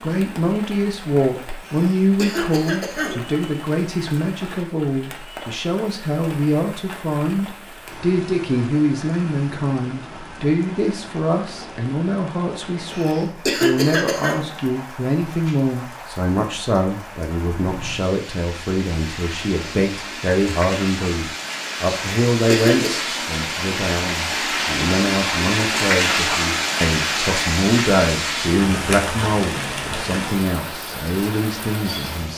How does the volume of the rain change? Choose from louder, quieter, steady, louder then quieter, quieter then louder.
louder.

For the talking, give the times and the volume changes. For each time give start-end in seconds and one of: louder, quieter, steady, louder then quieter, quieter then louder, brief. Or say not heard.
0.0-32.3 steady.